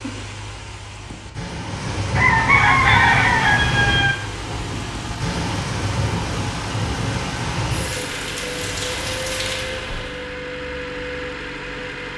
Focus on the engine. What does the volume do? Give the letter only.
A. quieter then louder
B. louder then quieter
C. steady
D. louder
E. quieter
C.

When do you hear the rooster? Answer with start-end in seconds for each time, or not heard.
2.1-4.2.